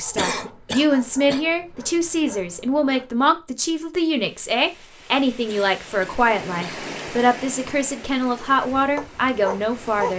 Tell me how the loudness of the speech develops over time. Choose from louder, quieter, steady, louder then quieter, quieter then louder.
steady.